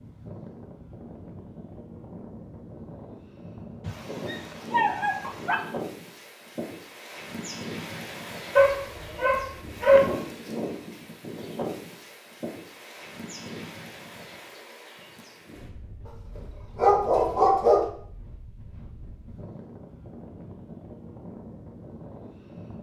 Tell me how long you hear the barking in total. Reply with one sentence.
The barking can be heard for 5 seconds in total.